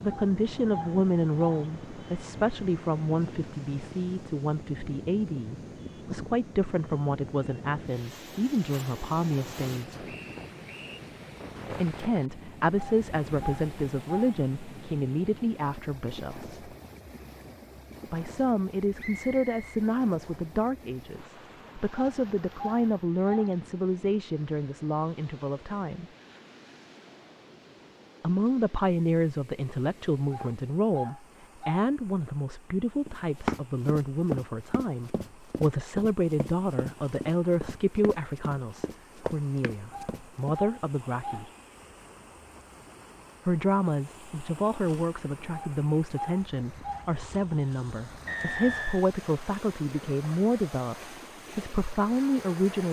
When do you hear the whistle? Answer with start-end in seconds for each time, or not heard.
10.1-11.0, 18.9-20.6, 48.2-49.1.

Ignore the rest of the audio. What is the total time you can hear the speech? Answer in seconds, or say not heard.
45 s.